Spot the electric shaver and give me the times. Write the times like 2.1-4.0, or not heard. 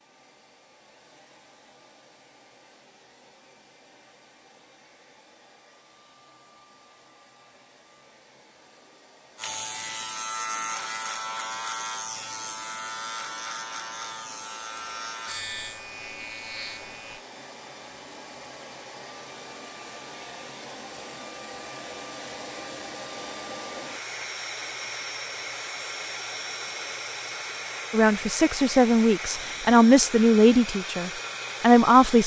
9.3-17.2.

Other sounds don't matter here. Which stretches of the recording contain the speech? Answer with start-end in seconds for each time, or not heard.
27.9-32.2.